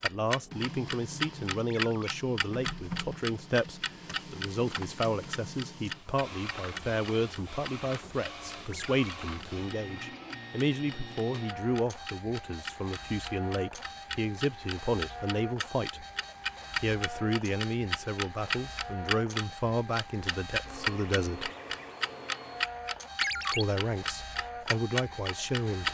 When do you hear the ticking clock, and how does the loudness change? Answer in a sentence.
You can hear the ticking clock from 0.0 to 25.9 s, getting quieter then louder.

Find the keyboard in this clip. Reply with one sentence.
You can't hear the keyboard here.